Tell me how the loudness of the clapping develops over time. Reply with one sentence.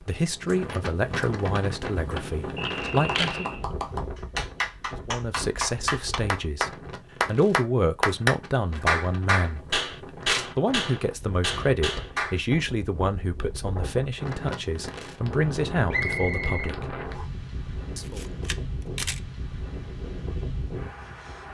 The volume of the clapping goes up, then down.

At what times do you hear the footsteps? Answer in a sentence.
The footsteps can't be heard in this clip.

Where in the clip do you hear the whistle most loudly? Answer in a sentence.
The loudest moment of the whistle is at 16 seconds.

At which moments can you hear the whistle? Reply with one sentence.
You can hear the whistle from 2.5 to 3.6 s and from 15.9 to 17.2 s.